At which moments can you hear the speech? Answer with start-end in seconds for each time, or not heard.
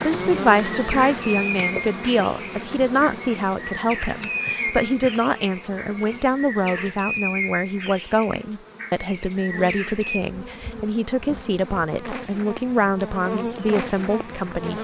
0.0-14.7.